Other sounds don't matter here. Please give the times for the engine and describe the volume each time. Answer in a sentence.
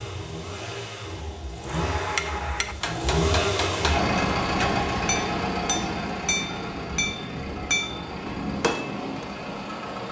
The engine can be heard from 0.0 to 10.0 s, getting louder then quieter.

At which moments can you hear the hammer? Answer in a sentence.
You can hear the hammer from 1.6 to 9.2 s.